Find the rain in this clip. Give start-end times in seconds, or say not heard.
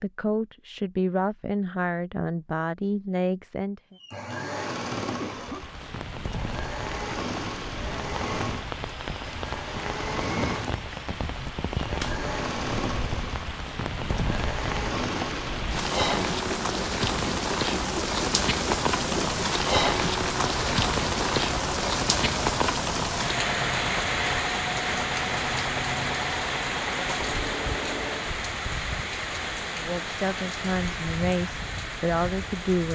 5.4-32.8.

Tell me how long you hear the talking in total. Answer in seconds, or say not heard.
7 s.